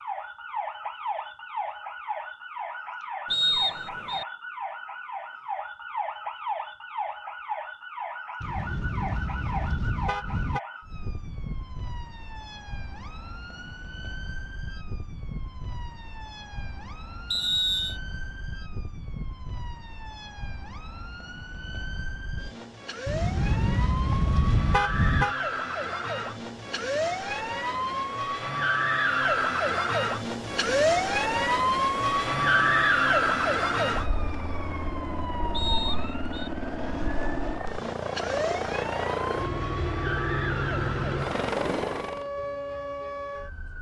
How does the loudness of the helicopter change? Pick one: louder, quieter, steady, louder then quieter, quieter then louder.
louder.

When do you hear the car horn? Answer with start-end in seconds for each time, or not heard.
8.4-10.6, 23.1-25.4.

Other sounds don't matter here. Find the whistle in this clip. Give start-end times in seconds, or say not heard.
3.3-4.2, 17.3-17.9, 35.5-36.5.